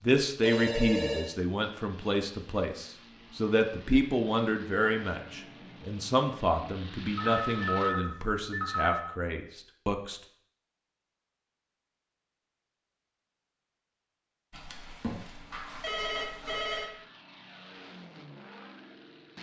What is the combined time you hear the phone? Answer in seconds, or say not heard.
5 s.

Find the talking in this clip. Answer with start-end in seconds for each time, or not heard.
0.0-10.2.